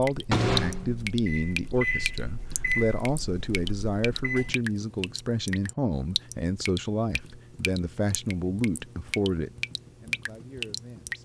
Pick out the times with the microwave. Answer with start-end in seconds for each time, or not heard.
0.1-4.6.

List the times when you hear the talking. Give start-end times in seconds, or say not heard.
0.0-11.1.